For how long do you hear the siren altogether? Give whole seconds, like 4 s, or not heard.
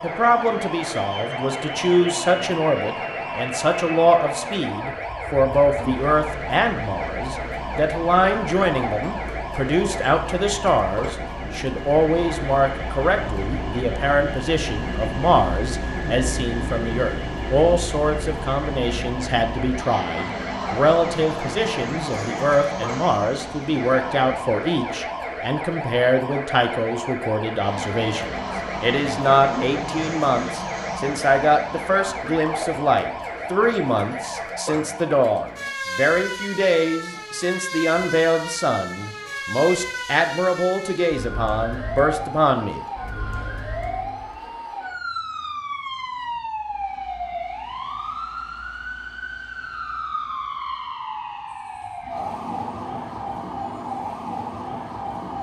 55 s.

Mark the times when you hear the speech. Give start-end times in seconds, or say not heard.
0.0-42.8.